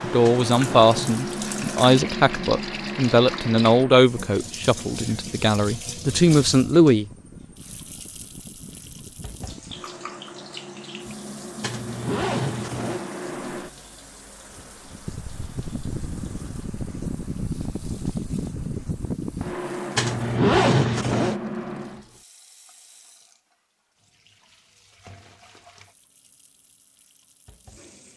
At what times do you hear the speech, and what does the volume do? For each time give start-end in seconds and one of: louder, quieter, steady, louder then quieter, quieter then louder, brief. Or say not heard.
0.0-7.1 quieter then louder.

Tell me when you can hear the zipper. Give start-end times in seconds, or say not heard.
0.2-1.2, 11.6-13.1, 19.9-21.4.